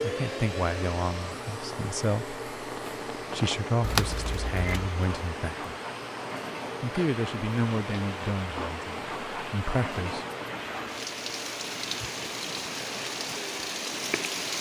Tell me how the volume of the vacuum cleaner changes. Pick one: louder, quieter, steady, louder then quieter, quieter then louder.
quieter.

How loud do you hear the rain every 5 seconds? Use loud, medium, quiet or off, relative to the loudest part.
medium, loud, loud.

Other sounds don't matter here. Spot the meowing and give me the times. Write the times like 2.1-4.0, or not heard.
3.8-4.9.